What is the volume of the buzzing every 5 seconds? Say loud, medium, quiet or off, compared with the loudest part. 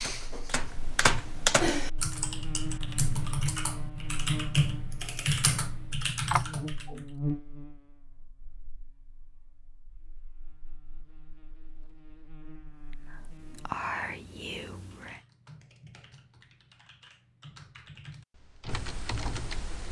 loud, loud, quiet, off.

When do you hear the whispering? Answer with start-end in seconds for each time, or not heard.
12.9-15.2.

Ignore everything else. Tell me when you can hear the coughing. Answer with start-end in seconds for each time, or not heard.
6.3-7.0.